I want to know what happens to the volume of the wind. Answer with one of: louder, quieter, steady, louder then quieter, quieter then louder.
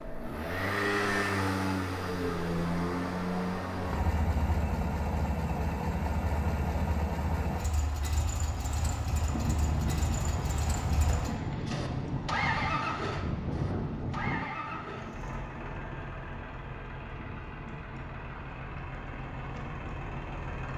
quieter.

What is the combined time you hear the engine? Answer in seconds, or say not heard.
21 s.